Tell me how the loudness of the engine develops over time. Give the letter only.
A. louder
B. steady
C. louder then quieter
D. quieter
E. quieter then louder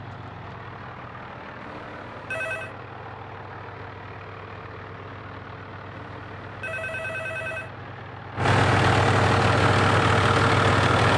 A.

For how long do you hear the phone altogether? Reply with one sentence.
The phone can be heard for 3 seconds in total.